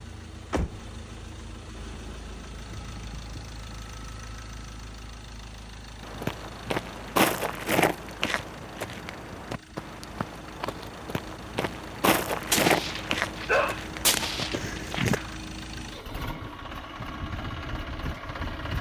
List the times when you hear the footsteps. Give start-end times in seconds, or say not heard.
6.0-15.2.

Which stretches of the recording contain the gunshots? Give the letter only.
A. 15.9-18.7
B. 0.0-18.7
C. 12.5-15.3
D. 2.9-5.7
C.